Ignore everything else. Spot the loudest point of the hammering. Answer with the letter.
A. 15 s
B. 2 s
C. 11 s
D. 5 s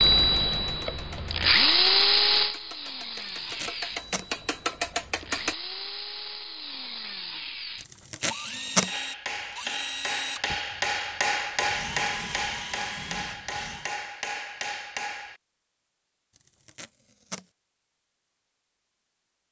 C.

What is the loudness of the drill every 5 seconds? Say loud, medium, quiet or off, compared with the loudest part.
loud, quiet, quiet, off.